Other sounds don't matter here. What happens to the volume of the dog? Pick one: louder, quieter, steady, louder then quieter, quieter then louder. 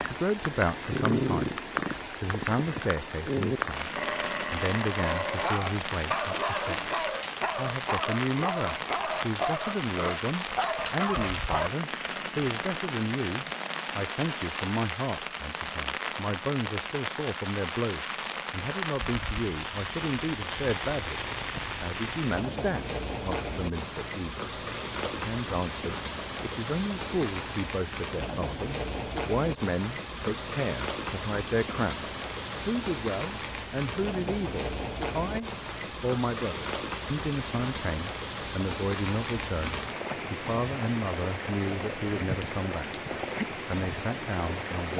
steady.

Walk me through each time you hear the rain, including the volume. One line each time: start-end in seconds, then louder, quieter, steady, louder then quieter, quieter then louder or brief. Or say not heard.
0.0-44.9 steady.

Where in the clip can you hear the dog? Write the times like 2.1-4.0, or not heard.
0.9-11.7.